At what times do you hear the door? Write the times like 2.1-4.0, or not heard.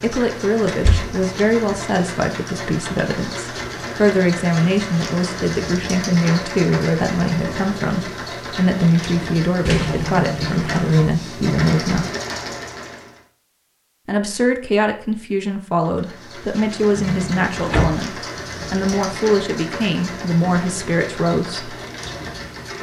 0.7-1.2, 9.7-10.9, 16.9-18.0.